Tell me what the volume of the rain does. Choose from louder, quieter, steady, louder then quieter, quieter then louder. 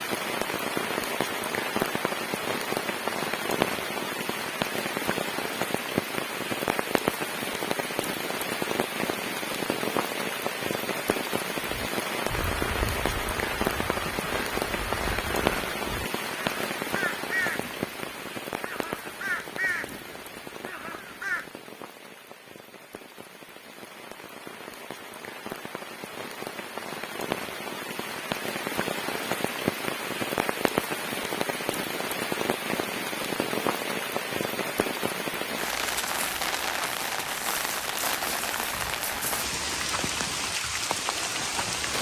quieter then louder.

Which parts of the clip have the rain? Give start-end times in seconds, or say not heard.
0.0-41.9.